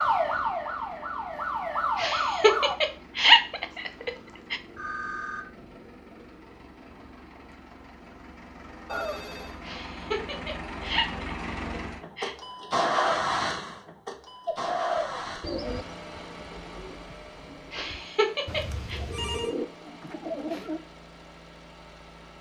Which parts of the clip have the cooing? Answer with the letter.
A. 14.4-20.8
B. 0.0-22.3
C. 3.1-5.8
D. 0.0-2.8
A.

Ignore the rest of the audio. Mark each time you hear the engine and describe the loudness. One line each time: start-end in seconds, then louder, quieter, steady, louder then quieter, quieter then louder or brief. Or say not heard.
0.0-22.3 louder then quieter.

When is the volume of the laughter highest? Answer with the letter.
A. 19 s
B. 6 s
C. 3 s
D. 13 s
C.